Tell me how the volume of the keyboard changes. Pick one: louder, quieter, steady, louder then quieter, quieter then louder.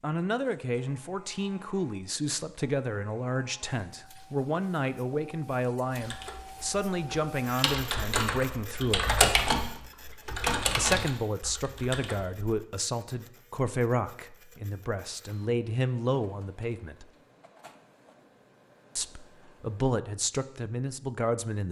louder then quieter.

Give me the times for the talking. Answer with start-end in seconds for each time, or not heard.
0.0-9.2, 10.8-17.1, 18.9-21.6.